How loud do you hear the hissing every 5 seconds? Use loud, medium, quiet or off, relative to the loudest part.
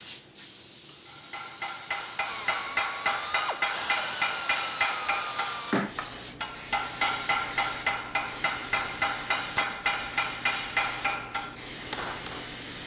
medium, loud, loud.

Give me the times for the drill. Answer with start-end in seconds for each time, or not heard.
2.2-5.8.